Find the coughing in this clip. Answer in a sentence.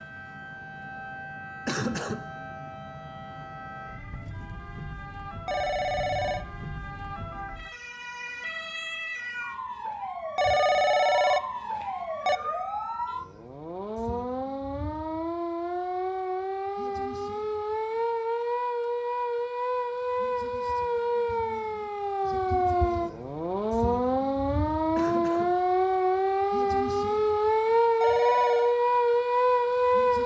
The coughing can be heard from 1.6 to 2.3 s and from 24.9 to 25.6 s.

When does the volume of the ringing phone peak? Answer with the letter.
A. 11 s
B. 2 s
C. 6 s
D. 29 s
A.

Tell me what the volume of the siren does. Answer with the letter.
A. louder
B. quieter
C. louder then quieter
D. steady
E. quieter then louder
A.